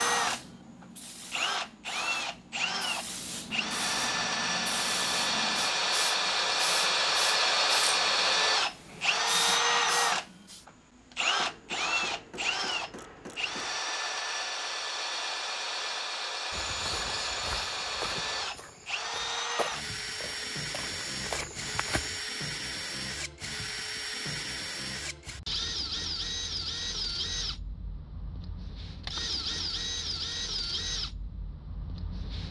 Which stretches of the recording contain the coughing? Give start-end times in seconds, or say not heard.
not heard.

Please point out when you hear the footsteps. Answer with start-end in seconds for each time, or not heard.
16.5-22.2.